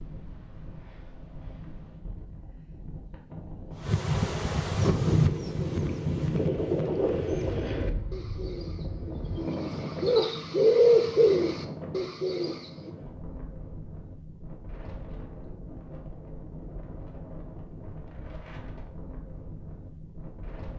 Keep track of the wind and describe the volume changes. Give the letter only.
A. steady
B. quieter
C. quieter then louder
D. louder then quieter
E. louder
D.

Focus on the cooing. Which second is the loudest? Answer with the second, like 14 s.
11 s.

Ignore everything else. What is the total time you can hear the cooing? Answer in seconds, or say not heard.
8 s.